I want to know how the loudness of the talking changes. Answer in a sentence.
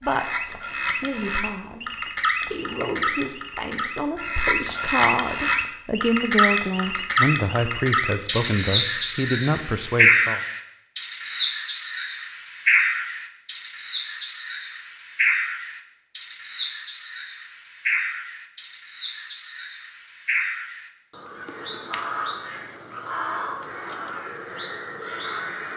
The loudness of the talking goes up.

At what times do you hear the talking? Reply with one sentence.
You can hear the talking from 0.0 to 10.4 s.